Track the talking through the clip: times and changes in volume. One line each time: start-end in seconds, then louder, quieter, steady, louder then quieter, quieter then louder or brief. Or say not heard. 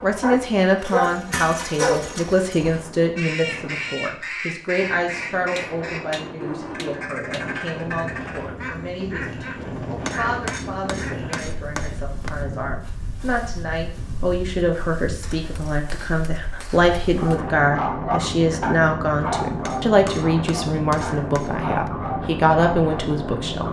0.0-23.6 quieter then louder.